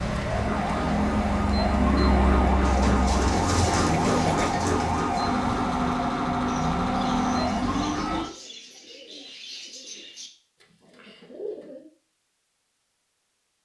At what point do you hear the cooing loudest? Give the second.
4 s.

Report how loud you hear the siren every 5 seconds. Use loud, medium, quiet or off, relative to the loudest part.
loud, loud, off.